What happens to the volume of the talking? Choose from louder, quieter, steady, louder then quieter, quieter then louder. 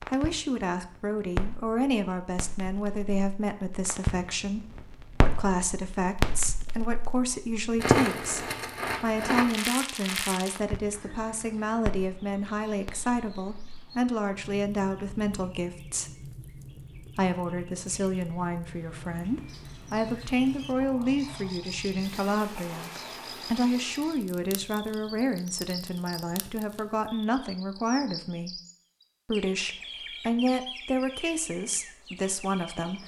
steady.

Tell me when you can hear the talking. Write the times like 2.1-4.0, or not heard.
0.0-16.1, 17.1-22.9, 23.5-28.6, 29.2-33.0.